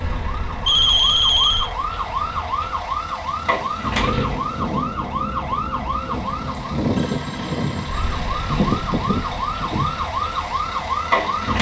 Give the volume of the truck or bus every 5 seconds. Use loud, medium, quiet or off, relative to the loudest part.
medium, loud, medium.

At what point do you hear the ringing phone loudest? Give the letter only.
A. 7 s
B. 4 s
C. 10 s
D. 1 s
D.